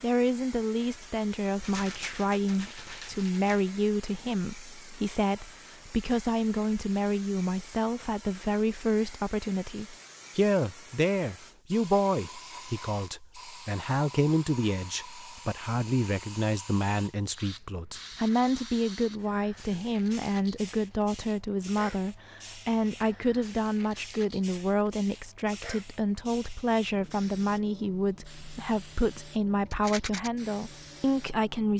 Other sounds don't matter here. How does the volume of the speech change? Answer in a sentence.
The loudness of the speech stays about the same.